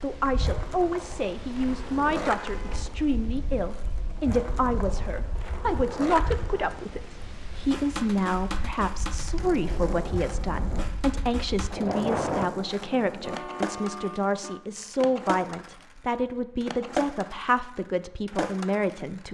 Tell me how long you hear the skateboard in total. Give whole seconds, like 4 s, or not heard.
19 s.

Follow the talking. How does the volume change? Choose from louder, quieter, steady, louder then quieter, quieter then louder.
steady.